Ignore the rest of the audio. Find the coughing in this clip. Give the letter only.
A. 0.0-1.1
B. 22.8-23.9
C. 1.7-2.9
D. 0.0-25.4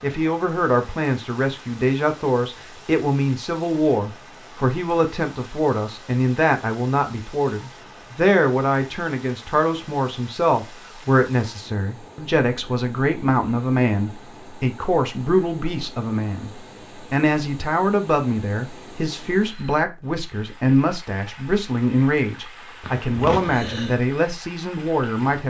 B.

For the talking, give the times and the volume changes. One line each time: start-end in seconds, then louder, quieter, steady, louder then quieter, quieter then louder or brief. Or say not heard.
0.0-25.4 steady.